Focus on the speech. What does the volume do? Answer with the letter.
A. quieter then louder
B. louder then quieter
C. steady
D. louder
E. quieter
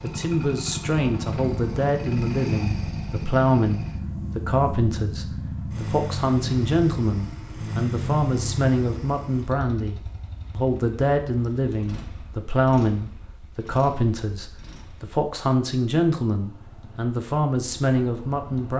C.